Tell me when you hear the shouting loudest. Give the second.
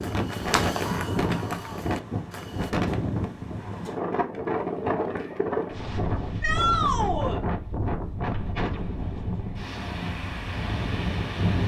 7 s.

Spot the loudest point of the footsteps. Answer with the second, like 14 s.
1 s.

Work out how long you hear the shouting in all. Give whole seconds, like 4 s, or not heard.
2 s.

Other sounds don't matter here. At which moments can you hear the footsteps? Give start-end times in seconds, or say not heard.
0.0-2.8.